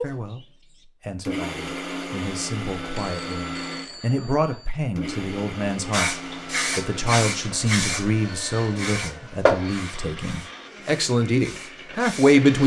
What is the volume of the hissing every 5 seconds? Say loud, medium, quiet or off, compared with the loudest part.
off, loud, quiet.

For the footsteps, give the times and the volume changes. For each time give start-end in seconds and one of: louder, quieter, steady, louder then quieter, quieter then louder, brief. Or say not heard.
not heard.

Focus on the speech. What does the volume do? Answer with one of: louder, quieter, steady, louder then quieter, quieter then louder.
louder.